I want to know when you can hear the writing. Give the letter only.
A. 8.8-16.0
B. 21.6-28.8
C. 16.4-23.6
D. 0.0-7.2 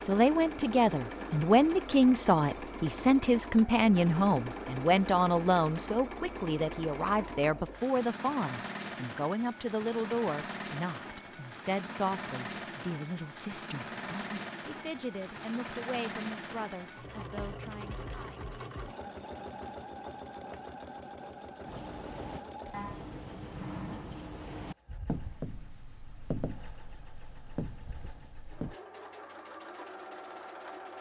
B.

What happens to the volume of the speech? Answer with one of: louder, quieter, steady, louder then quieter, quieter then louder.
quieter.